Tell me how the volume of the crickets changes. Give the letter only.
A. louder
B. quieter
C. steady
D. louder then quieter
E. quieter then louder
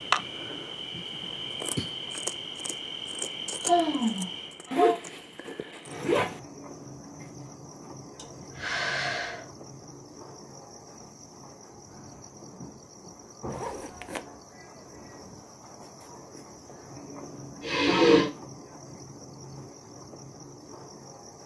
B.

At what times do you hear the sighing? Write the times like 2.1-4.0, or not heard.
3.6-5.0, 8.2-9.4, 17.6-18.3.